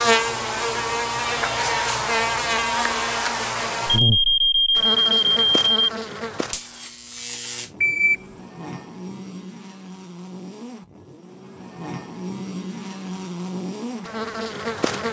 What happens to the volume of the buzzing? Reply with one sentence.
The loudness of the buzzing goes down, then up.